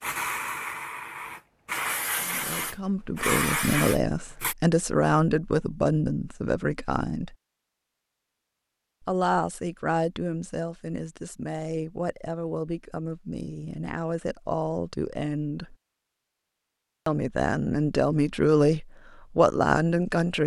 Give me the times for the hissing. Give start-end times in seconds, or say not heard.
0.0-4.5.